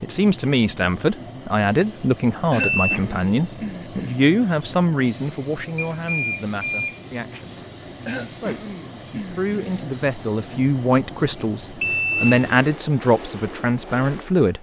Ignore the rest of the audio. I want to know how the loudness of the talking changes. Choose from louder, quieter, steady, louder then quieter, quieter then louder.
quieter then louder.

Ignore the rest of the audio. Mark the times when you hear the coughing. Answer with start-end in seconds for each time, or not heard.
2.5-4.2, 8.1-9.8.